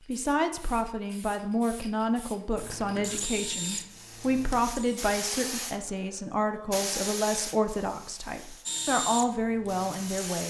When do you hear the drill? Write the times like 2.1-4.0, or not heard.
2.5-5.2, 8.7-10.3.